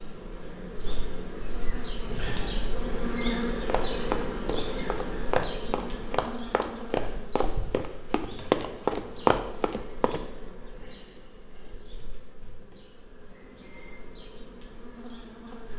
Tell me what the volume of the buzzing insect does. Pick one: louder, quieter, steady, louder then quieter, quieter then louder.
quieter.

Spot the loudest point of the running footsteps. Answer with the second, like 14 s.
9 s.